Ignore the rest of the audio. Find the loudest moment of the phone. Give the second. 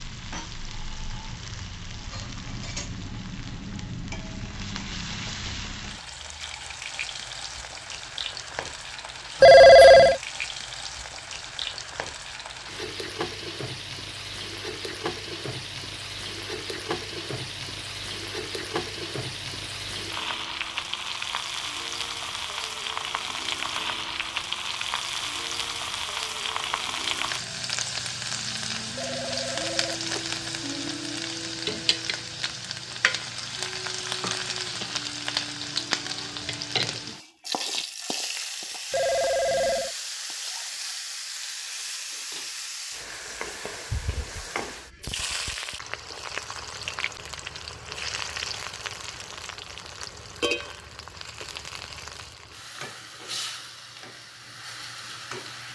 10 s.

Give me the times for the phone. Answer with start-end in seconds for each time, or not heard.
9.4-10.2, 28.9-30.4, 38.9-40.0.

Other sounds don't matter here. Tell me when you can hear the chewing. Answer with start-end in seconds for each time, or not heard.
not heard.